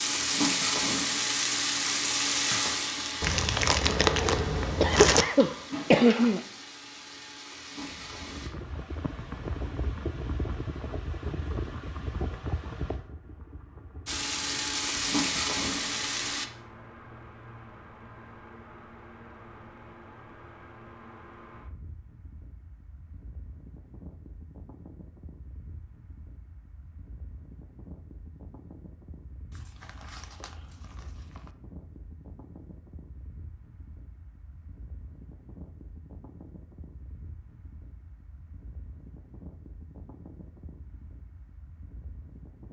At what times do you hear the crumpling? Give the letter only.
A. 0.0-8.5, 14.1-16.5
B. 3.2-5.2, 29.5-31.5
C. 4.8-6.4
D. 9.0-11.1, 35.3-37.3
B.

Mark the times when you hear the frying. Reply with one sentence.
The frying can be heard from 0.0 to 8.5 s and from 14.1 to 16.5 s.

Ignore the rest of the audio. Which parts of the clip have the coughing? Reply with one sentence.
The coughing can be heard from 4.8 to 6.4 s.